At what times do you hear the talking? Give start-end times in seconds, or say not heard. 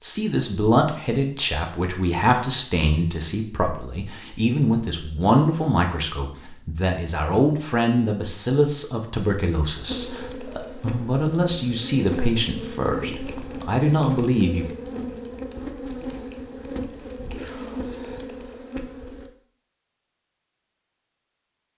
0.0-14.7.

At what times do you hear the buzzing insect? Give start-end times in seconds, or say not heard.
9.8-19.3.